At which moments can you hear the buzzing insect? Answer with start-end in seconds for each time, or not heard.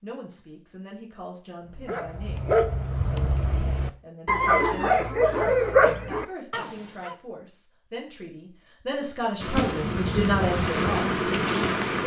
9.4-12.0.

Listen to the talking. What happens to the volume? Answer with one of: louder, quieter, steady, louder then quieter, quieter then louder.
louder.